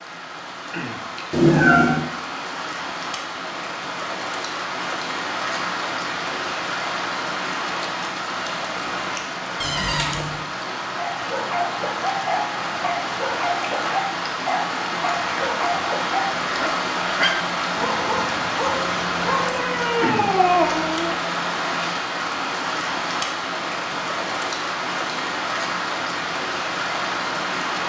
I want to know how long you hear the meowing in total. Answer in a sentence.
The meowing can be heard for 3 seconds in total.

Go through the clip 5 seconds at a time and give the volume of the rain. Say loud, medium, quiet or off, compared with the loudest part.
medium, loud, loud, loud, loud, loud.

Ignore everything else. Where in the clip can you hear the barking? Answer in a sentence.
You can hear the barking from 10.9 to 19.6 s.